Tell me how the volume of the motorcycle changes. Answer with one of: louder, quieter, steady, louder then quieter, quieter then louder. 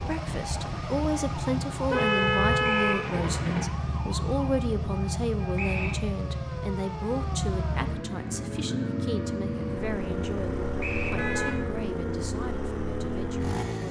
steady.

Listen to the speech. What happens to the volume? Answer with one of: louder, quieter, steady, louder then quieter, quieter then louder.
quieter.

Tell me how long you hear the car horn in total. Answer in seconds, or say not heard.
4 s.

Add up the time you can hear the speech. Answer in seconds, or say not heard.
14 s.